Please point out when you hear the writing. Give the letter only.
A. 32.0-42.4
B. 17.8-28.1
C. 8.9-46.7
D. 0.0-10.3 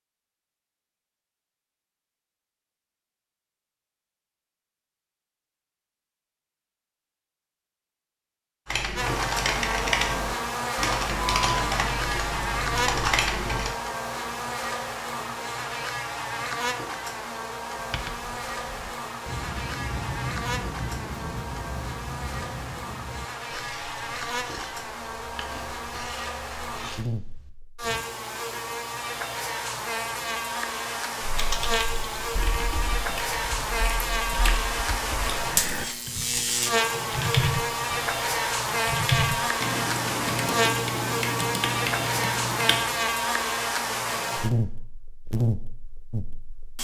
B.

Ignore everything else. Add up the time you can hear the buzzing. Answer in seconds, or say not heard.
38 s.